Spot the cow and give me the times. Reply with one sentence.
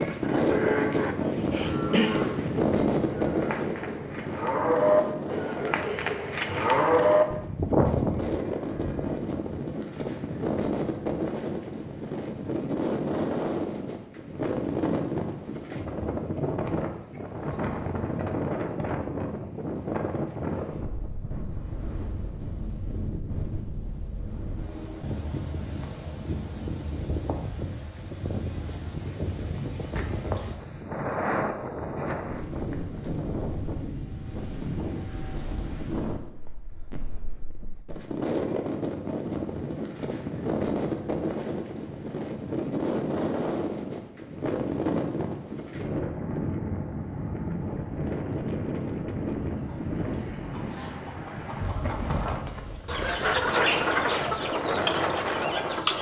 You can hear the cow from 0.5 to 9.3 s.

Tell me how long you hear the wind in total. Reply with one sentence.
You can hear the wind for 56 seconds altogether.